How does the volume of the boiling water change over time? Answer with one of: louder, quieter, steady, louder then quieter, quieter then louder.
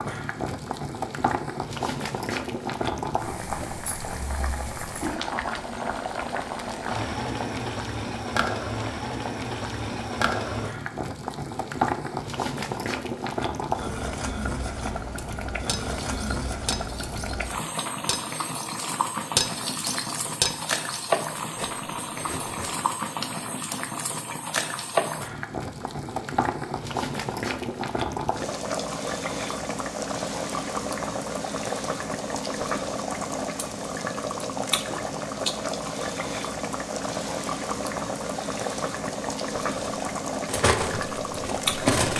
steady.